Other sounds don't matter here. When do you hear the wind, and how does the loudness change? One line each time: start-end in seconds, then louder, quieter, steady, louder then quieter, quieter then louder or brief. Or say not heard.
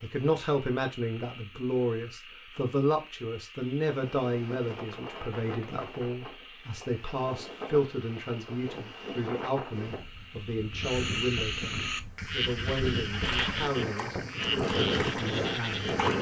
3.9-16.1 louder.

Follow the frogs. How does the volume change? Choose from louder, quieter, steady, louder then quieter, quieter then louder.
louder.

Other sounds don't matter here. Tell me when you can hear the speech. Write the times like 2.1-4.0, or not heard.
0.0-15.9.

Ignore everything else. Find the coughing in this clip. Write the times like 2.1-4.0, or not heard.
not heard.